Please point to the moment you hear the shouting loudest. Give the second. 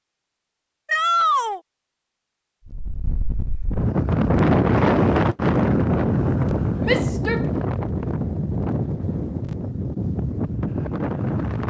1 s.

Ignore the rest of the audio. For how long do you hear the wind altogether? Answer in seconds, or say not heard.
9 s.